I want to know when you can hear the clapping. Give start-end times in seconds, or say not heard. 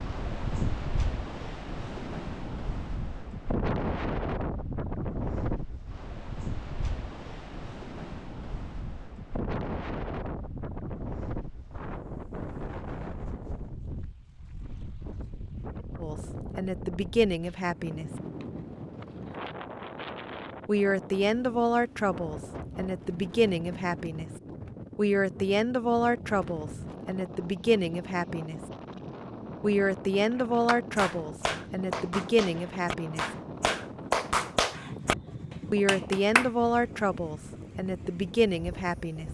30.6-36.5.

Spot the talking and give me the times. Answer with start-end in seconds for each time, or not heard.
16.0-18.1, 20.6-24.3, 24.9-28.6, 29.6-33.2, 35.7-39.2.